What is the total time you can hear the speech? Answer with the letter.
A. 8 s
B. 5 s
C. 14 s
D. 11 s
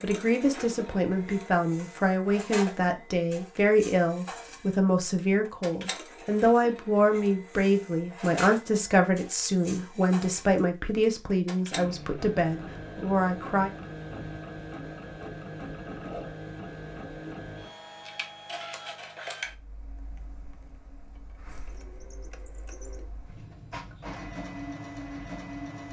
C.